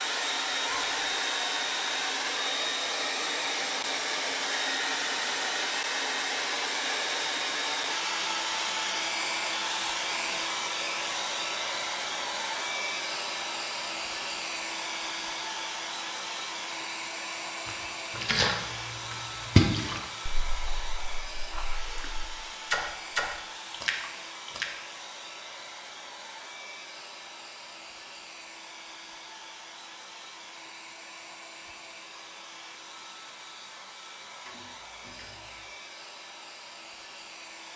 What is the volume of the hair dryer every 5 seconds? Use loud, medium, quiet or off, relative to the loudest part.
loud, loud, loud, medium, medium, quiet, quiet, quiet.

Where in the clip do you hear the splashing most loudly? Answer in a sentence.
The volume of the splashing peaks at 20 seconds.